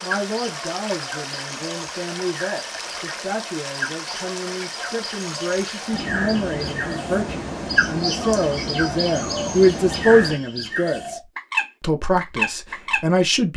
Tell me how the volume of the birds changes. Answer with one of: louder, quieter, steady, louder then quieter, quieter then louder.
louder.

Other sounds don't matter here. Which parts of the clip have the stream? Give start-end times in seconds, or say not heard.
0.0-10.4.